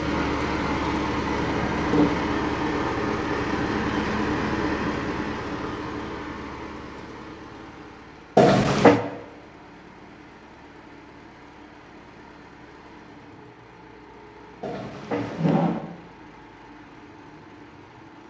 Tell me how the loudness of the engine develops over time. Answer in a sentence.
The volume of the engine goes down.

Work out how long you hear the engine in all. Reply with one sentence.
The engine can be heard for 18 seconds in total.